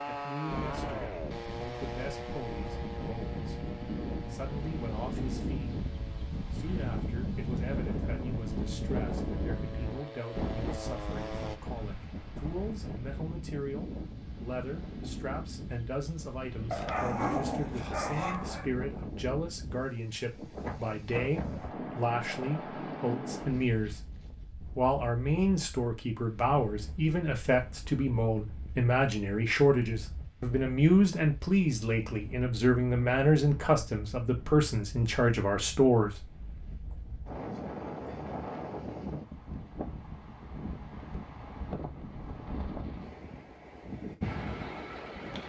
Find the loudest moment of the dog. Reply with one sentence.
The loudest moment of the dog is at 17 seconds.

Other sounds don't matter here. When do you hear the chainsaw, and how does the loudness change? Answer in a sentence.
The chainsaw can be heard from 0.0 to 11.6 s, getting quieter then louder.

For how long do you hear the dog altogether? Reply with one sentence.
You can hear the dog for 2 seconds altogether.